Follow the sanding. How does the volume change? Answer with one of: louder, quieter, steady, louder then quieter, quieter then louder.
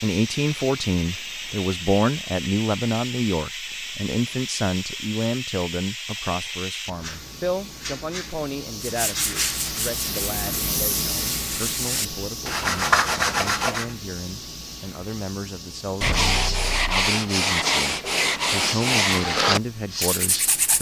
louder.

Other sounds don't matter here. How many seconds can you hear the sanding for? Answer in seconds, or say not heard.
10 s.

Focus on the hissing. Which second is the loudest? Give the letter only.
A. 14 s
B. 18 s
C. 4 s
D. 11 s
D.